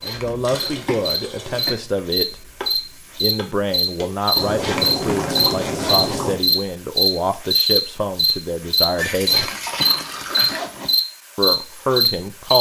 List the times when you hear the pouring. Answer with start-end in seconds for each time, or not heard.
0.2-1.8, 4.3-6.3, 8.9-10.7.